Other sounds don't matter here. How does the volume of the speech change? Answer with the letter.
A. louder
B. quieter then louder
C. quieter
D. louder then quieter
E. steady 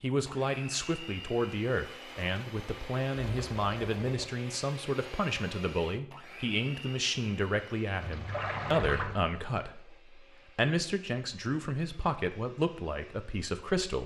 E.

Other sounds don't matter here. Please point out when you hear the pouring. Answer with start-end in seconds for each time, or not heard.
3.2-4.3, 8.0-9.2.